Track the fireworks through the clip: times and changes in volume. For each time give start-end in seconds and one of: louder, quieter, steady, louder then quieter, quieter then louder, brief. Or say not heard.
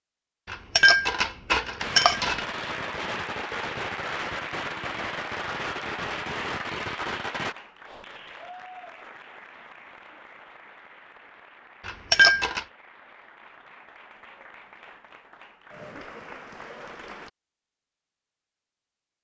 1.8-7.5 steady.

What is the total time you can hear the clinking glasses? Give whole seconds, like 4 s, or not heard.
3 s.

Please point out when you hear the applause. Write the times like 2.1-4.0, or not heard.
2.6-17.3.